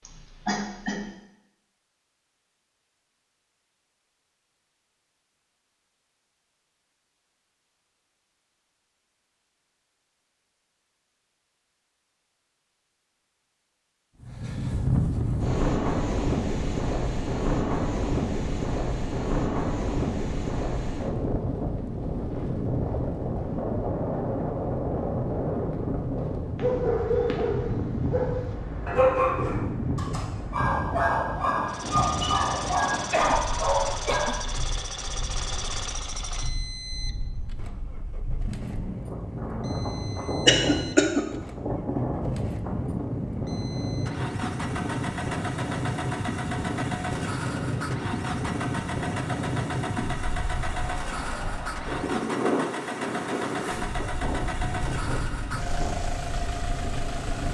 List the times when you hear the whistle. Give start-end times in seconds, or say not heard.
not heard.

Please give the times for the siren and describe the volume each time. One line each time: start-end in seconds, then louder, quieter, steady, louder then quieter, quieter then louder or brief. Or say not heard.
not heard.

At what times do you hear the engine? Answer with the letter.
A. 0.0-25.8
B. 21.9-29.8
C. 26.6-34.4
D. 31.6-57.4
D.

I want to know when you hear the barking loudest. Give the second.
29 s.